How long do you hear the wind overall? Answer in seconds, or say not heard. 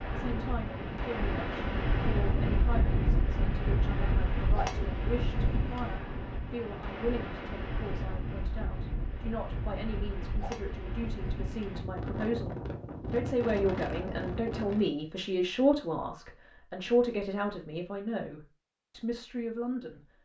15 s.